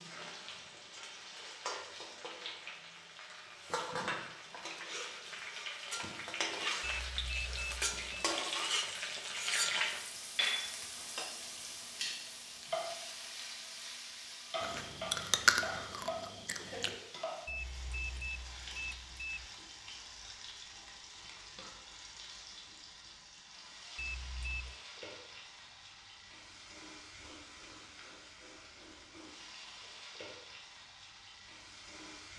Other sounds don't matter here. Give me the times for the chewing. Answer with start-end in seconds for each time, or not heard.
14.6-16.9.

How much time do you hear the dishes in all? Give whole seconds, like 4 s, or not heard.
not heard.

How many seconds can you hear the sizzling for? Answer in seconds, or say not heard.
32 s.